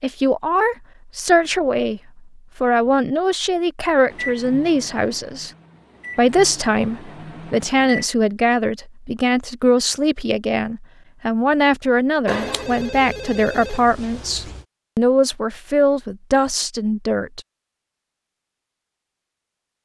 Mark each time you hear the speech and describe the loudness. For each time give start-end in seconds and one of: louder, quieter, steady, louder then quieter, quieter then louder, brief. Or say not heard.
0.0-5.5 steady
6.2-17.4 steady.